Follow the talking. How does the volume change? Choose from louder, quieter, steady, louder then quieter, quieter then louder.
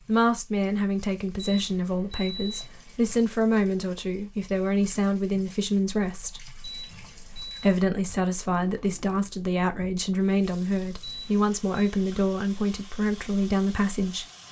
steady.